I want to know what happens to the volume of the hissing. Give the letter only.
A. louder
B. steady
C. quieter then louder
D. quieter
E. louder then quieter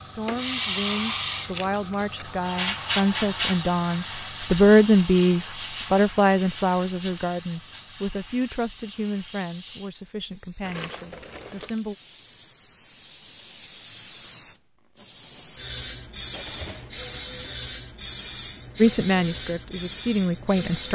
C.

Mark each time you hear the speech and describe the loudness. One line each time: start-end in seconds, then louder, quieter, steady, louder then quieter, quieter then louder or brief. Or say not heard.
0.1-11.9 louder then quieter
18.8-20.9 brief.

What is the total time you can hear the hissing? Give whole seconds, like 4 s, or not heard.
21 s.